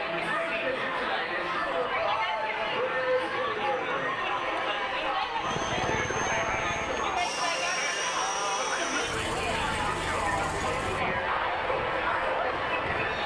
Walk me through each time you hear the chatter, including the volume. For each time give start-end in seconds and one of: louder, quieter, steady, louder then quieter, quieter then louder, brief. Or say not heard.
0.0-13.2 steady.